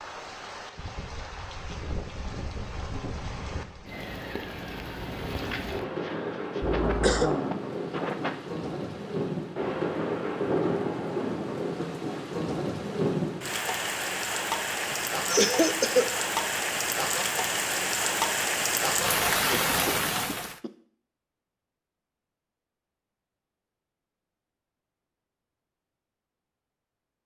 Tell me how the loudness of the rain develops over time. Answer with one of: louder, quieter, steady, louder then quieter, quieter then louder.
louder.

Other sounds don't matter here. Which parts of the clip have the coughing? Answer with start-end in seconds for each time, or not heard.
6.8-7.3, 14.8-16.1, 19.5-20.7.